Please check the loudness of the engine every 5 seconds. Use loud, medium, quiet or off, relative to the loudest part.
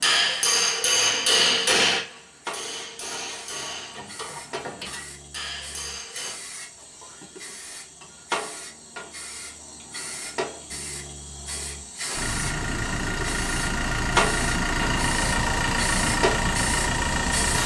off, off, loud, loud.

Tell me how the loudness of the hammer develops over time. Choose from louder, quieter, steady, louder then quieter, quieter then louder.
quieter.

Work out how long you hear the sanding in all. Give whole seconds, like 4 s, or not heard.
not heard.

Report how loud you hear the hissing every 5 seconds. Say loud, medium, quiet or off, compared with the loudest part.
medium, medium, loud, loud.